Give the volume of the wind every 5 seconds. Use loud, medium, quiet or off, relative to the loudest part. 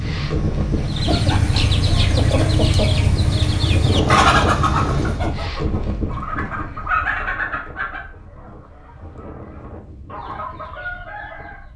loud, medium, quiet.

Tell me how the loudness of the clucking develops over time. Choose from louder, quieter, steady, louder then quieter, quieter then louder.
quieter.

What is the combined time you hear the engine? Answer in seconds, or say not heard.
5 s.